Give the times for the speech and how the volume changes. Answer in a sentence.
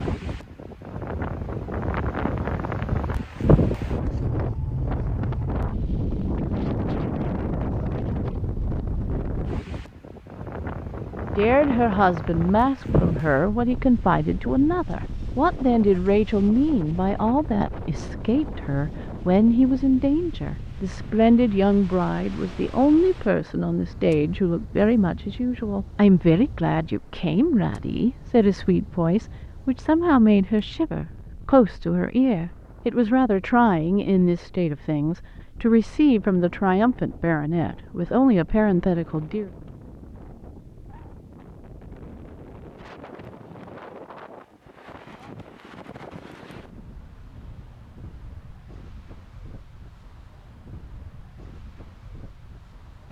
You can hear the speech from 11.3 to 39.5 s, at a steady volume.